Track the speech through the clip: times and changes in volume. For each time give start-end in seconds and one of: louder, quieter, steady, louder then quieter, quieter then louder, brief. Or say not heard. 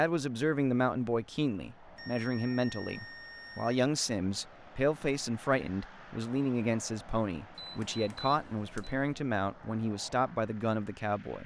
0.0-11.4 steady.